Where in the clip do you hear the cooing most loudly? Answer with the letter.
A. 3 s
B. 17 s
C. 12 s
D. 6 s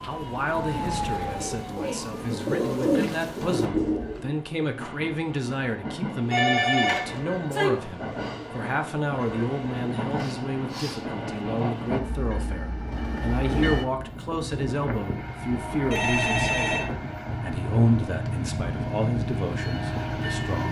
A.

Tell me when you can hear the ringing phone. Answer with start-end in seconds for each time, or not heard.
6.3-7.7, 15.9-16.9.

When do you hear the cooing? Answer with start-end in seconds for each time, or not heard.
0.0-4.3.